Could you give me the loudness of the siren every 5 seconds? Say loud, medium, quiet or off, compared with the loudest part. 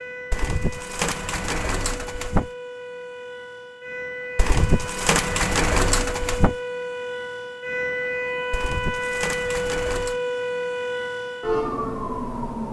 medium, loud, loud.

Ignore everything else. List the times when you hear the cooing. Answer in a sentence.
You can hear the cooing from 0.3 to 2.5 s, from 4.3 to 6.5 s and from 8.5 to 10.2 s.